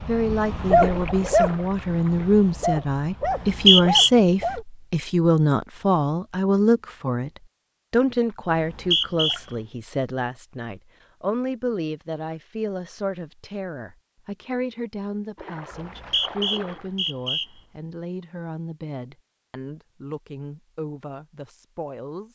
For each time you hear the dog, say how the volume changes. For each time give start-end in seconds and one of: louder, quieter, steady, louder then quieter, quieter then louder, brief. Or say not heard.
0.0-4.7 quieter.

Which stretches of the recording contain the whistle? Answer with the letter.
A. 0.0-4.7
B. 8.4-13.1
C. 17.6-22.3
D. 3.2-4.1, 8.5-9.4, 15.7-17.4
D.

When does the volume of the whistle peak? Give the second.
4 s.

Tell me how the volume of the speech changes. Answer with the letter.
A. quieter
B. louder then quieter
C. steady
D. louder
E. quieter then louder
A.